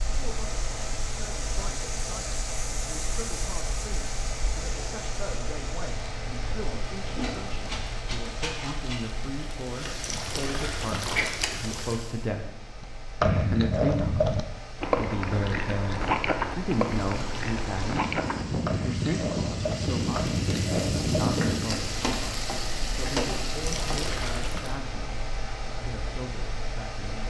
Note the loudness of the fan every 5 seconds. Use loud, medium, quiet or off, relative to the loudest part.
medium, medium, quiet, loud, loud, medium.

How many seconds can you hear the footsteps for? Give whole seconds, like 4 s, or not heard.
not heard.